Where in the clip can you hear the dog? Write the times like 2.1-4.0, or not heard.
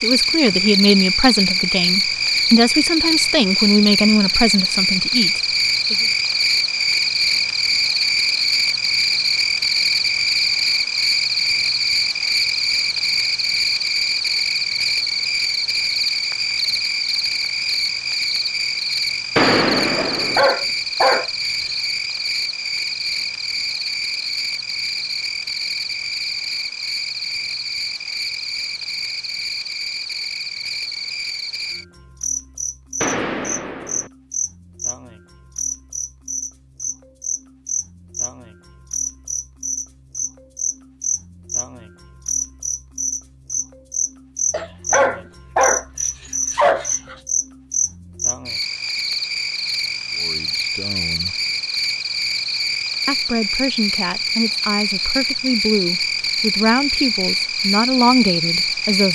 19.9-21.7, 44.5-47.1.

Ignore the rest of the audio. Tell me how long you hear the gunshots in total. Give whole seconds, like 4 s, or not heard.
2 s.